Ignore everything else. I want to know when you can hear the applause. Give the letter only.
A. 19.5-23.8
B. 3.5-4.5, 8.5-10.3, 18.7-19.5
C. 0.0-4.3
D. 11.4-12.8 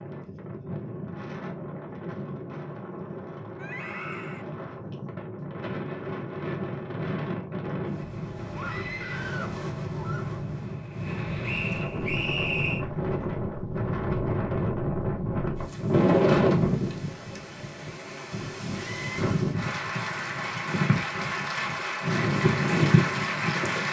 A.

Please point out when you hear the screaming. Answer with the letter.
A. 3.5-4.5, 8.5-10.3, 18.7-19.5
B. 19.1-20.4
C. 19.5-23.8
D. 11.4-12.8
A.